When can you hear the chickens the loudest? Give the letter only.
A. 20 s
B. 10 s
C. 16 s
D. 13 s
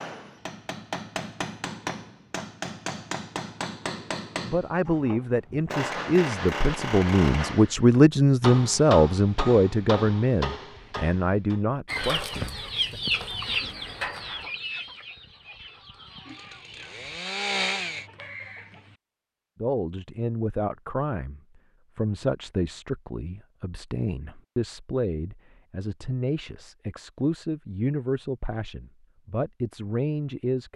D.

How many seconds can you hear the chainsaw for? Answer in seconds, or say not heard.
2 s.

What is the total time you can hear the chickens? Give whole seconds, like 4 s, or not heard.
7 s.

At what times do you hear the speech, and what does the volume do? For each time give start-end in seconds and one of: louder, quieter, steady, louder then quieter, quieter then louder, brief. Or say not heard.
4.5-12.9 louder then quieter
19.6-30.7 steady.